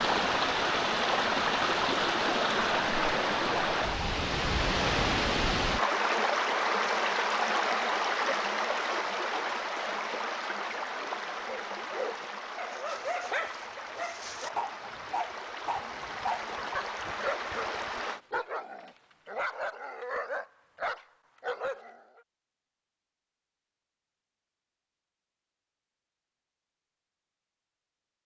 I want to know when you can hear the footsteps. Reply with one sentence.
You can't hear the footsteps here.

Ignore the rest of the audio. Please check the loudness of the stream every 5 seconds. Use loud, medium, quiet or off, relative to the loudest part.
loud, loud, medium, medium, off, off.